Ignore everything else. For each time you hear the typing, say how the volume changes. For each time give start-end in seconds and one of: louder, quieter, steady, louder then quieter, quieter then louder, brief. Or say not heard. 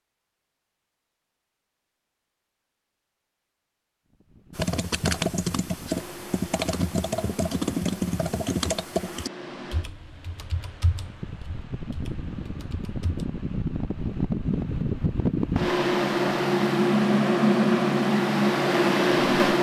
4.5-13.2 quieter.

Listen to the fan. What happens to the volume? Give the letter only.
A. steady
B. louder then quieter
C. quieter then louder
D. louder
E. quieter
D.